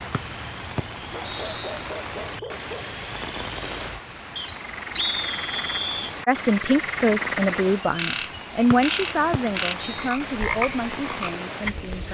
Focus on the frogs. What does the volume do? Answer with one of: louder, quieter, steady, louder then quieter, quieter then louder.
louder.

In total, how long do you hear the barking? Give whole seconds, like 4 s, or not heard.
2 s.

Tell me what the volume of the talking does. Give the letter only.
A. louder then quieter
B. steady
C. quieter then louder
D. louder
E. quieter
E.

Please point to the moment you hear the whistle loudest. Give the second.
5 s.